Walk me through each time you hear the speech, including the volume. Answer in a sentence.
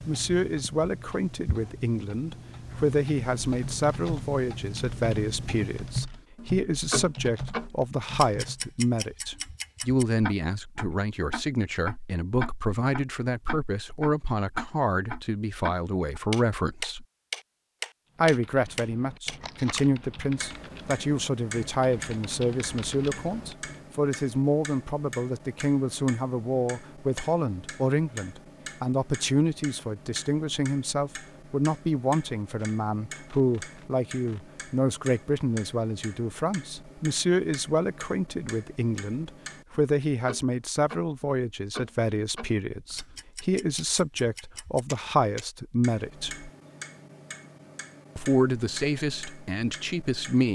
You can hear the speech from 0.1 to 17.1 s, at a steady volume; from 18.1 to 46.5 s, at a steady volume; and briefly from 48.1 to 50.5 s.